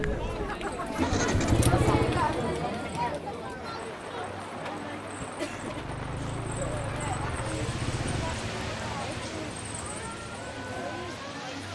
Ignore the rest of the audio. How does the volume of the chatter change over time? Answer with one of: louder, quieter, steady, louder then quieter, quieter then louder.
quieter.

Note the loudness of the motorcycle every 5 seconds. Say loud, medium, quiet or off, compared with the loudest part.
loud, medium, off.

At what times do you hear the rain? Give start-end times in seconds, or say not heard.
3.6-11.6.